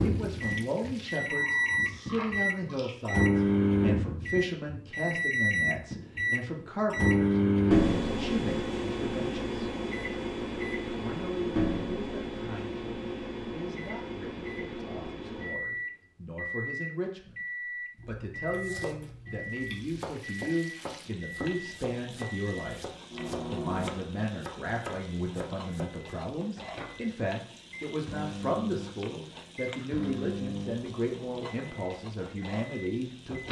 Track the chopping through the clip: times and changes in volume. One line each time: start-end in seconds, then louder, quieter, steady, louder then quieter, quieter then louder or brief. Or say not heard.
18.4-26.1 steady.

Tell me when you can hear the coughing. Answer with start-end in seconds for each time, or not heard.
not heard.